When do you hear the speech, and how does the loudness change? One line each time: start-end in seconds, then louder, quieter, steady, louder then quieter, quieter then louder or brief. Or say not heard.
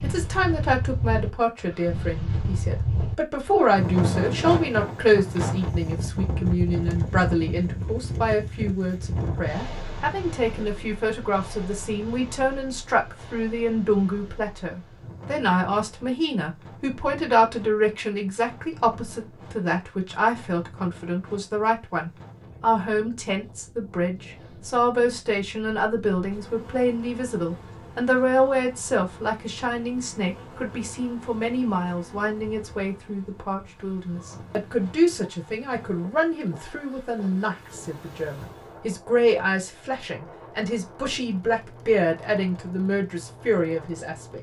0.0-44.3 steady.